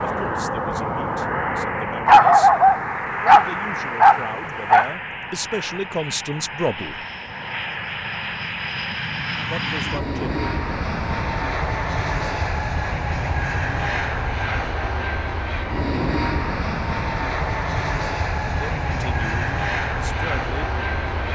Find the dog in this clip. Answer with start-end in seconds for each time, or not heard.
2.0-4.9.